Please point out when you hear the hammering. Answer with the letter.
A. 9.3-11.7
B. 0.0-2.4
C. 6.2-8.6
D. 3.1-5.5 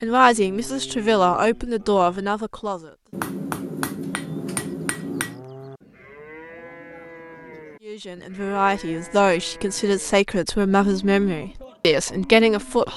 D.